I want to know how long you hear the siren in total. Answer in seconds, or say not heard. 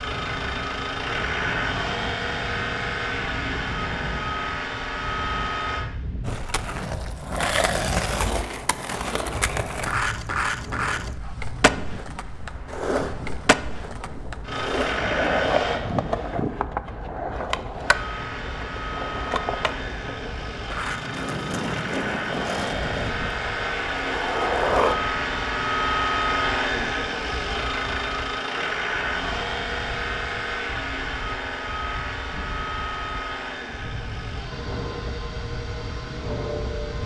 not heard.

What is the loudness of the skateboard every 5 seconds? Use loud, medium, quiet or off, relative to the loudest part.
off, loud, loud, loud, loud, off, off, off.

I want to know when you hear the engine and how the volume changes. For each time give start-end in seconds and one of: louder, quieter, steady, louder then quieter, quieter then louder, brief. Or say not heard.
0.0-5.8 steady
14.4-16.4 brief
17.8-37.0 louder then quieter.